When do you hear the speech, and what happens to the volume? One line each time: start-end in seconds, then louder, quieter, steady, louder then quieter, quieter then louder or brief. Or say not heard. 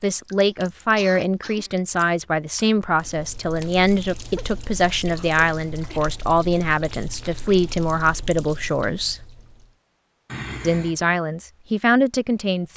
0.0-9.2 steady
10.6-12.7 brief.